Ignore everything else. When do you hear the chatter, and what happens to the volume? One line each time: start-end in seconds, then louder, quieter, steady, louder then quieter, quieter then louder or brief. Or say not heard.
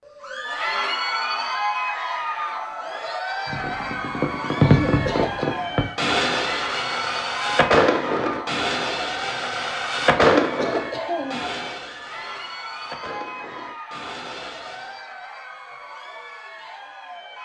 0.1-17.4 quieter.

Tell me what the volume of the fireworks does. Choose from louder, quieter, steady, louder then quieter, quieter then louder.
quieter.